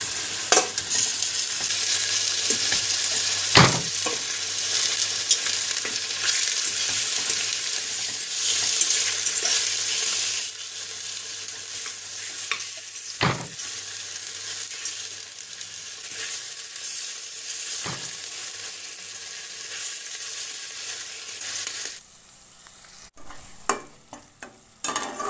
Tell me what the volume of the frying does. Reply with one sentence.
The volume of the frying goes down.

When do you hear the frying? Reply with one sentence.
You can hear the frying from 0.0 to 25.2 s.